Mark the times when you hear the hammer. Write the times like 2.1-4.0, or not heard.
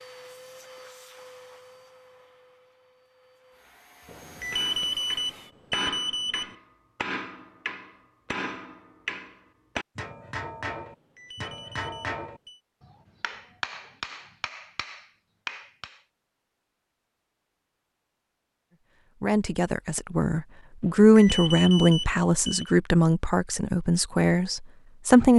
4.5-16.0.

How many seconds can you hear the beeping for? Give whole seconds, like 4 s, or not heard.
6 s.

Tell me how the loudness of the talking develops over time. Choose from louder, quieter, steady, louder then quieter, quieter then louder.
louder then quieter.